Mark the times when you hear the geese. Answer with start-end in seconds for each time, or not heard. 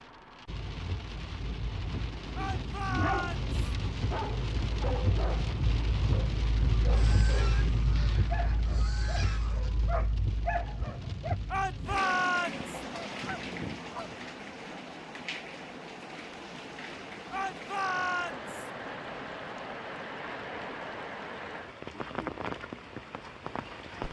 6.9-9.7, 12.8-14.2.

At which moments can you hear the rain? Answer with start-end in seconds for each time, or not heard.
0.0-24.0.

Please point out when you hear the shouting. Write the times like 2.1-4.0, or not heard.
2.4-3.5, 11.5-12.7, 17.3-18.7.